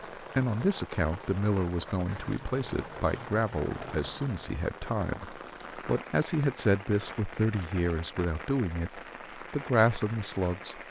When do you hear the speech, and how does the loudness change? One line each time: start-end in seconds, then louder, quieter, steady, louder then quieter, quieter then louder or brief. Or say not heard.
0.2-10.8 steady.